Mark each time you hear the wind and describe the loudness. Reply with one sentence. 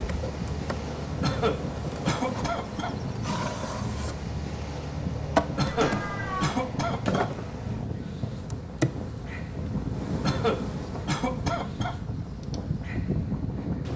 The wind can be heard from 0.0 to 13.9 s, at a steady volume.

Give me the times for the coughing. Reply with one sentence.
The coughing can be heard from 1.2 to 3.0 s, from 5.5 to 7.3 s and from 10.2 to 12.0 s.